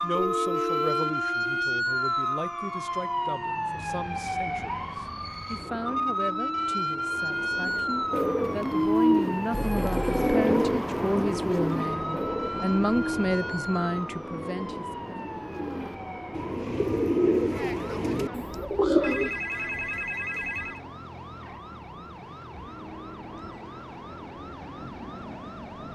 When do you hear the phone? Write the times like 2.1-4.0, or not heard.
0.1-1.1, 9.5-10.3, 19.0-20.8.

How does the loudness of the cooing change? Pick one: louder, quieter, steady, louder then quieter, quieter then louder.
quieter then louder.